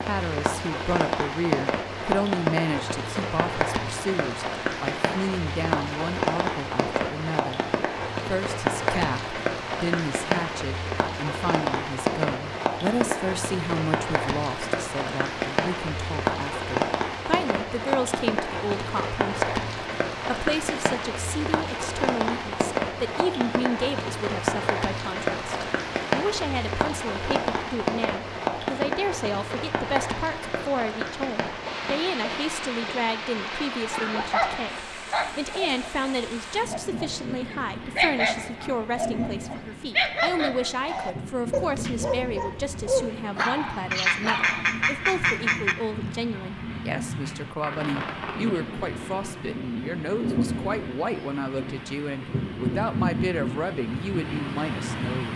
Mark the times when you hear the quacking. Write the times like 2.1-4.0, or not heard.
43.9-45.8.